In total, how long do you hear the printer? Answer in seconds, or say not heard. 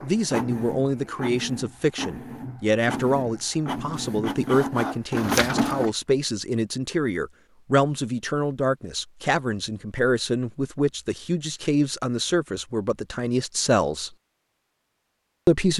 6 s.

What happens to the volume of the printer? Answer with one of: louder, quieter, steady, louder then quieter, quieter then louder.
louder.